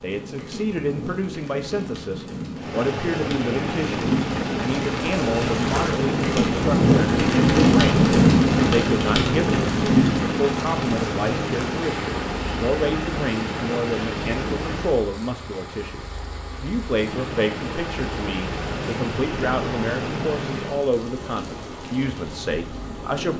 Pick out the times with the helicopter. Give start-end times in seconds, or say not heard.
2.5-15.1, 16.9-20.9.